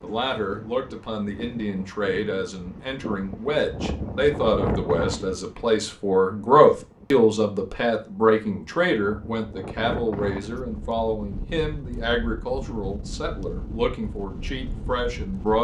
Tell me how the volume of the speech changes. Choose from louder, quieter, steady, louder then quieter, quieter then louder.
louder then quieter.